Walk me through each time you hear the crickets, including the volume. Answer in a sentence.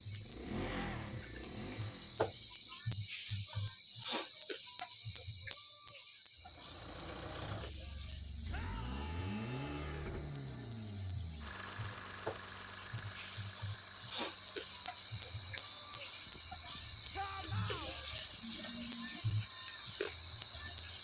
You can hear the crickets from 0.0 to 20.9 s, getting quieter then louder.